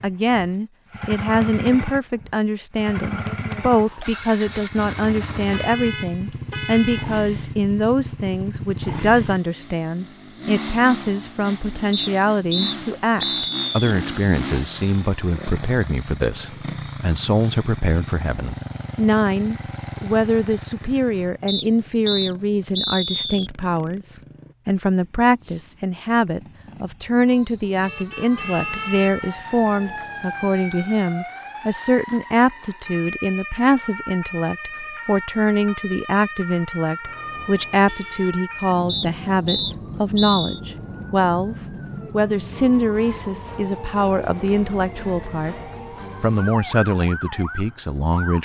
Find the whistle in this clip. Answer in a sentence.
You can hear the whistle from 11.9 to 13.9 s, from 21.4 to 23.5 s and from 38.9 to 40.6 s.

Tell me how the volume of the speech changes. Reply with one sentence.
The volume of the speech stays about the same.